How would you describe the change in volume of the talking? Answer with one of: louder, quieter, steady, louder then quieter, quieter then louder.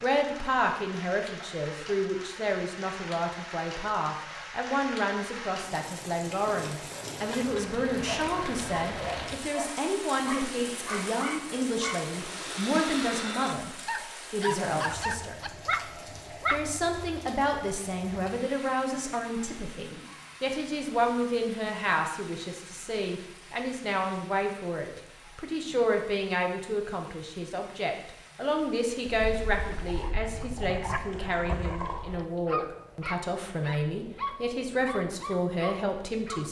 steady.